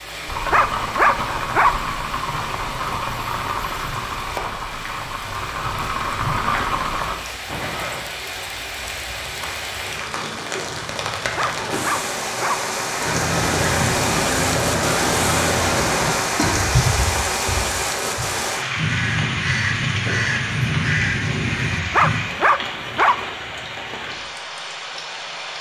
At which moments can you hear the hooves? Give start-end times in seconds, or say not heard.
0.2-8.1.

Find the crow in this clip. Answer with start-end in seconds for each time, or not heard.
13.0-22.2.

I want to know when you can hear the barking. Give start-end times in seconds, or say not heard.
0.5-1.9, 11.3-12.7, 21.9-23.2.